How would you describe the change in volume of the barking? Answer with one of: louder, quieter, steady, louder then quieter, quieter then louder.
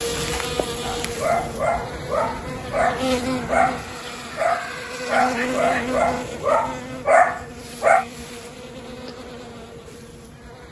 louder.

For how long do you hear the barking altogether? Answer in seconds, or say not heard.
7 s.